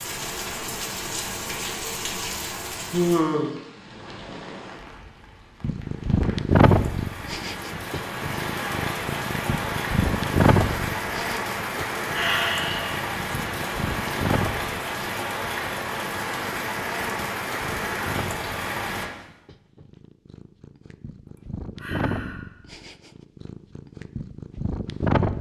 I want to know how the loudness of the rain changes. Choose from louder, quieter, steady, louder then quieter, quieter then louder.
quieter then louder.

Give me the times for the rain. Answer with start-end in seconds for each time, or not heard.
0.0-19.1.